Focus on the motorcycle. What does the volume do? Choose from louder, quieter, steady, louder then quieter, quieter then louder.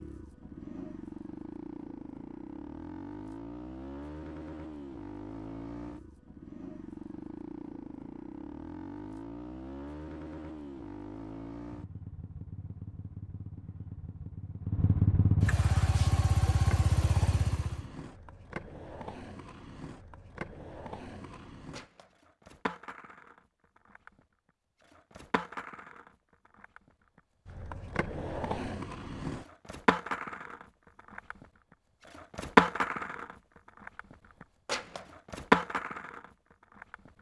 louder.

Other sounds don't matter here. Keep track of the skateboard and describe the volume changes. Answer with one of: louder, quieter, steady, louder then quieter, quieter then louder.
louder.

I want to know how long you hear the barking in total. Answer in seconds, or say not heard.
not heard.